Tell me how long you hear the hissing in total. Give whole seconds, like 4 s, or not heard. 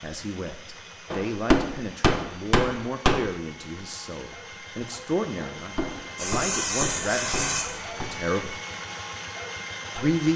2 s.